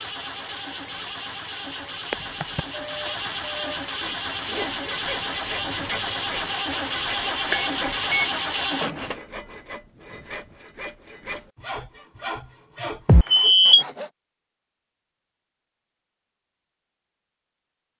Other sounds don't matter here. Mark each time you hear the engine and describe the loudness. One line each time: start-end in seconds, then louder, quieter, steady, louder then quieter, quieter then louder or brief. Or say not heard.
0.0-9.2 louder.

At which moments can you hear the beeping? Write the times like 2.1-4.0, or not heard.
2.1-3.8, 7.5-8.3, 13.1-13.8.